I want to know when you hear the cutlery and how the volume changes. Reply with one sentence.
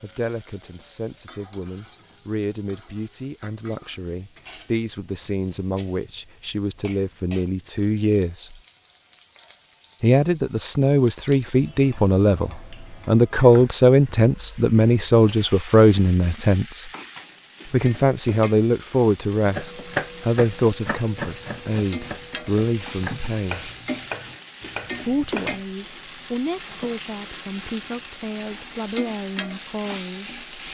You can't hear the cutlery here.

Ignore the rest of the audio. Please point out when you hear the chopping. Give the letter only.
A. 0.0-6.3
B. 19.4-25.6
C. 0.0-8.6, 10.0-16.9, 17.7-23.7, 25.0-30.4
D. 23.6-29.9
B.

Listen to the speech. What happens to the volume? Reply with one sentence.
The loudness of the speech goes up, then down.